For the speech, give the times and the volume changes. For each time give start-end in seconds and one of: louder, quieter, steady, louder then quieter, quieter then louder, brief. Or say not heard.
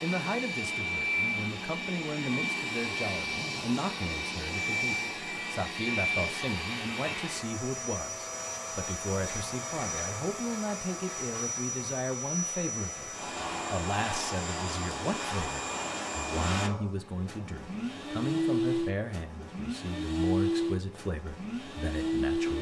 0.0-22.5 steady.